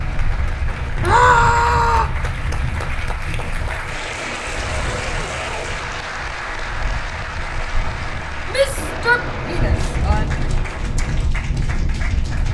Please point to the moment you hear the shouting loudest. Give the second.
1 s.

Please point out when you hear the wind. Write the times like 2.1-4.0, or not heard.
0.0-12.4.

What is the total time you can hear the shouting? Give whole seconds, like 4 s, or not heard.
3 s.